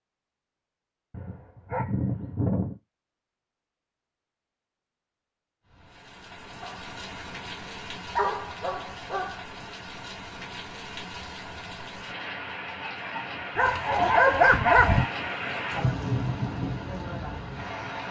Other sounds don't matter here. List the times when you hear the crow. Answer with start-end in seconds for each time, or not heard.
not heard.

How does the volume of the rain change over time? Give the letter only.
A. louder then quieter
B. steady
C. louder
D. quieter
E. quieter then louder
C.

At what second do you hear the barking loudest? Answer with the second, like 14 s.
14 s.